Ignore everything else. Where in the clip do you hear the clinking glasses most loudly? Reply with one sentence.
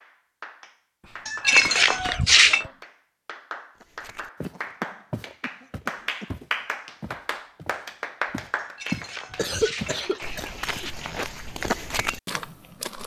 The volume of the clinking glasses peaks at 2 seconds.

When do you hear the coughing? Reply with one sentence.
You can hear the coughing from 1.0 to 2.7 s, from 4.4 to 6.3 s and from 9.3 to 11.3 s.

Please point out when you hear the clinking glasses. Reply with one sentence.
You can hear the clinking glasses from 1.2 to 2.6 s and from 8.6 to 10.4 s.